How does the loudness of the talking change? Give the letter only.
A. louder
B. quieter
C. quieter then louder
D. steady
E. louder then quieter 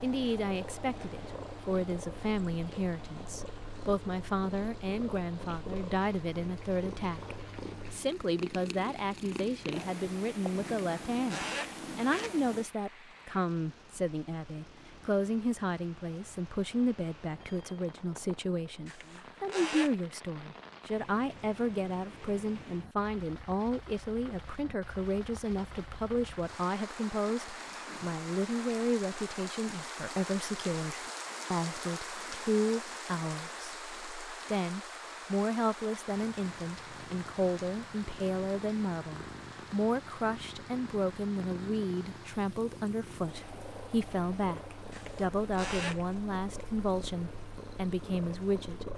D.